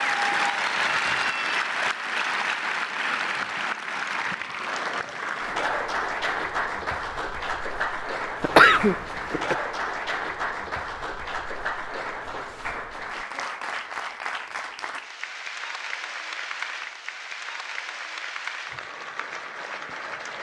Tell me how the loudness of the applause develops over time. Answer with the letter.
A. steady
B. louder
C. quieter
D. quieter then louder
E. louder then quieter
C.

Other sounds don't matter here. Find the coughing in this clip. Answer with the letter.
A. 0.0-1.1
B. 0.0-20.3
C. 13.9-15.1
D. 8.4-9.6
D.